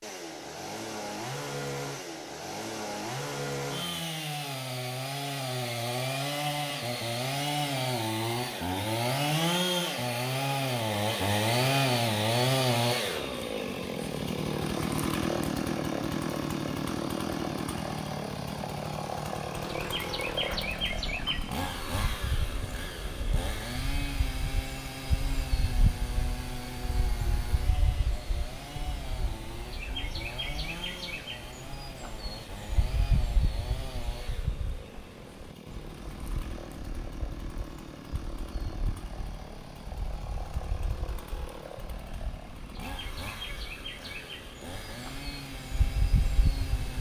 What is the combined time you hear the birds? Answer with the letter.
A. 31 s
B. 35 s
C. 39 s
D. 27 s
D.